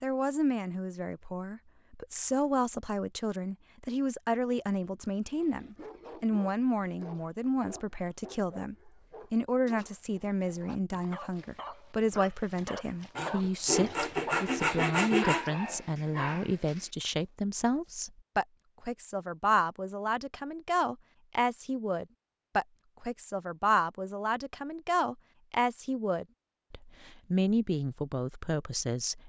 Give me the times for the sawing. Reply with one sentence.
The sawing can be heard from 13.2 to 15.5 s.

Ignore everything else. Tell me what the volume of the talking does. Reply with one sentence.
The loudness of the talking stays about the same.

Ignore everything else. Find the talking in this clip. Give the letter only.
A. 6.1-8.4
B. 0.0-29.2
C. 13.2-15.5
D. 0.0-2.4
B.